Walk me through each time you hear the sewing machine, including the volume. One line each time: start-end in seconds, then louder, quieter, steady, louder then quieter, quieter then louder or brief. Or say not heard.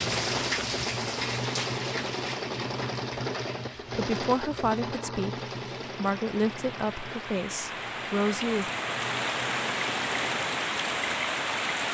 0.0-10.6 quieter.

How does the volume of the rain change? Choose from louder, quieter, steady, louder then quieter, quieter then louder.
quieter then louder.